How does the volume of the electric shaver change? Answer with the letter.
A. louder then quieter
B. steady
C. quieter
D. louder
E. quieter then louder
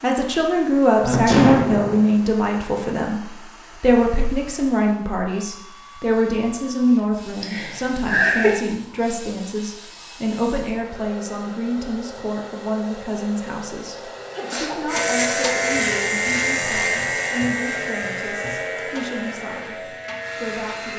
C.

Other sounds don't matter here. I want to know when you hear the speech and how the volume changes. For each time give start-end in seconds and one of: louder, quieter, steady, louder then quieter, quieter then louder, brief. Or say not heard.
0.0-20.9 quieter.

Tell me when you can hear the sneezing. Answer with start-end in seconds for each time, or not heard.
1.0-2.0, 7.4-8.6, 14.3-14.8.